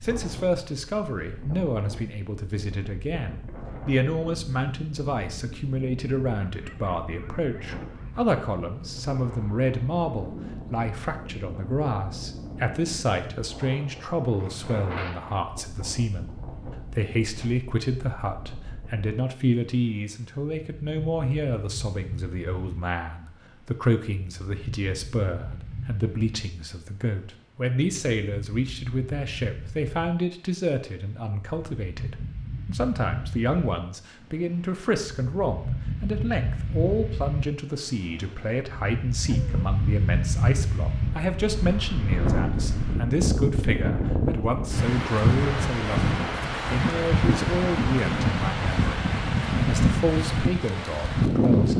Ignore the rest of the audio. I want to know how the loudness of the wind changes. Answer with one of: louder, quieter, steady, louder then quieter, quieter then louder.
louder.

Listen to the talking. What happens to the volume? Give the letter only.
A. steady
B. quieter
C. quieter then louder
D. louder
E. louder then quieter
A.